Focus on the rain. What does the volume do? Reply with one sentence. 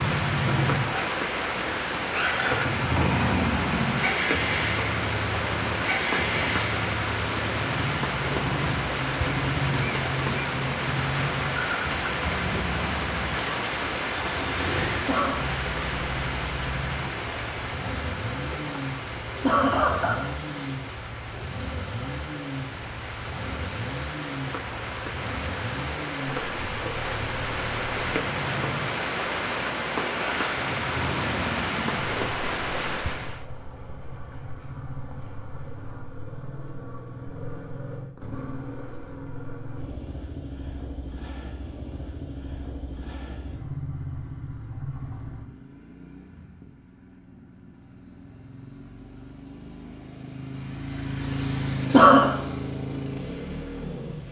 The volume of the rain goes down, then up.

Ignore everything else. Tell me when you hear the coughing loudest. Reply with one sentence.
The loudest moment of the coughing is at 52 seconds.